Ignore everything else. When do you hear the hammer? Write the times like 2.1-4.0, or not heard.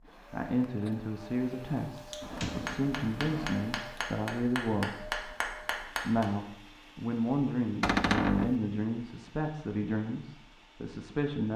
1.9-6.2.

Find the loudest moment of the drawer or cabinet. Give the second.
8 s.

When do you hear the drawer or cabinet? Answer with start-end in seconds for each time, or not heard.
2.2-3.5, 7.8-8.6.